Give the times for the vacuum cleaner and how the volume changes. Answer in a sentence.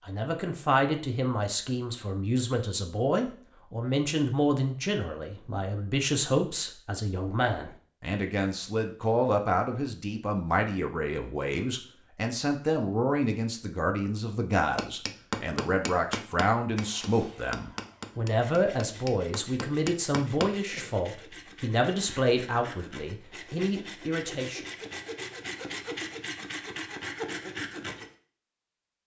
You can't hear the vacuum cleaner here.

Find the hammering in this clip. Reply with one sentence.
You can hear the hammering from 14.6 to 20.9 s.